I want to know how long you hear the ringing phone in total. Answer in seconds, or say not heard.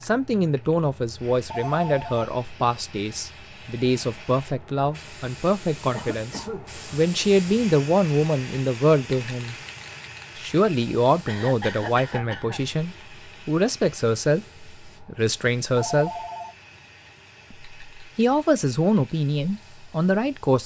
2 s.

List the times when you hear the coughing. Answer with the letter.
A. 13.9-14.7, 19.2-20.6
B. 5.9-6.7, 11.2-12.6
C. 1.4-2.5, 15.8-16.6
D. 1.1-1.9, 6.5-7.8
B.